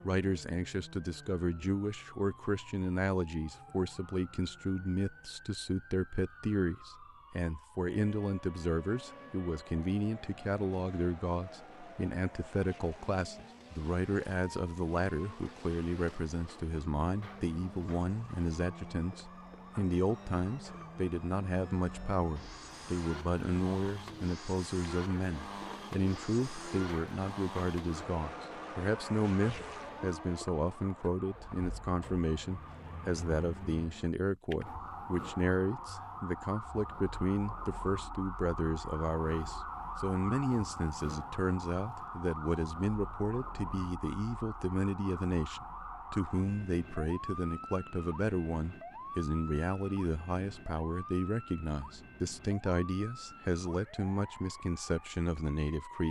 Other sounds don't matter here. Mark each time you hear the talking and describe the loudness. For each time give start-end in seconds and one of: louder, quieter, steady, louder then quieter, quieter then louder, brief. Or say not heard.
0.0-56.0 steady.